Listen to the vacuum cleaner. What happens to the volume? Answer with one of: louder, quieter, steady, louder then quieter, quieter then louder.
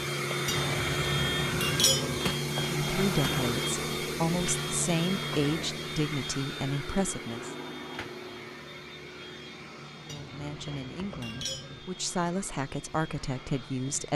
quieter.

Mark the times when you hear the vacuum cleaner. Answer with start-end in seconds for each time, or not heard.
0.0-14.1.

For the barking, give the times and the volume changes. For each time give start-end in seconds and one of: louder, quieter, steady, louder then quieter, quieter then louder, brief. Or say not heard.
not heard.